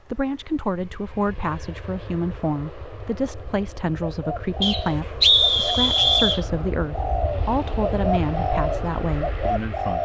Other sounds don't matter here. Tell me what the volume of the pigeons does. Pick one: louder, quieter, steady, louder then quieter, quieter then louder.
louder.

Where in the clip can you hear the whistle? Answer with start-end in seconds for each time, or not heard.
4.6-6.4.